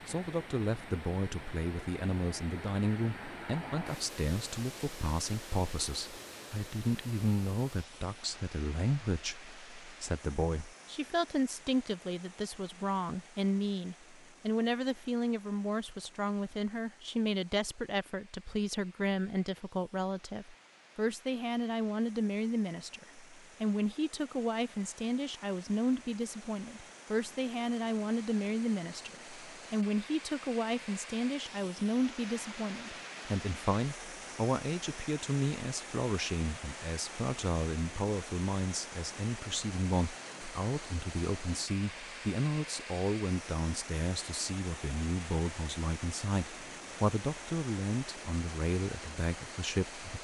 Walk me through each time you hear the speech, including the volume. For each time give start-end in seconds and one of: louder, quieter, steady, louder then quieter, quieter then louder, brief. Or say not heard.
0.1-50.2 steady.